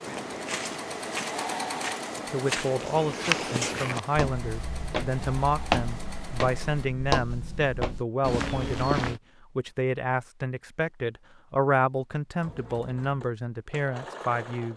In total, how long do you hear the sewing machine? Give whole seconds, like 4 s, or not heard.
9 s.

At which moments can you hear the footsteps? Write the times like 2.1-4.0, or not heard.
0.0-9.2.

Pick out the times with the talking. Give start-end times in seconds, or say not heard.
2.2-14.7.